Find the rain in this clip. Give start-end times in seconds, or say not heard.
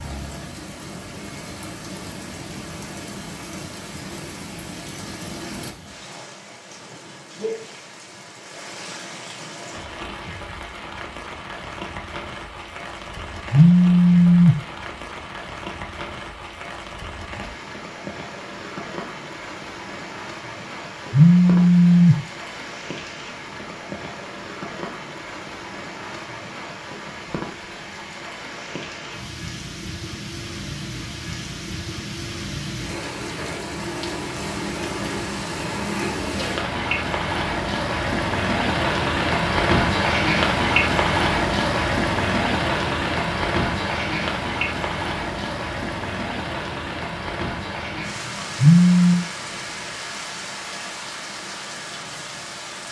0.0-52.8.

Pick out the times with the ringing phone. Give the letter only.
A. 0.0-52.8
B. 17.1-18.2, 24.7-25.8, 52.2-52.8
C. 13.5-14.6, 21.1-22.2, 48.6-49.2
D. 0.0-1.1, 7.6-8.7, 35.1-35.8
C.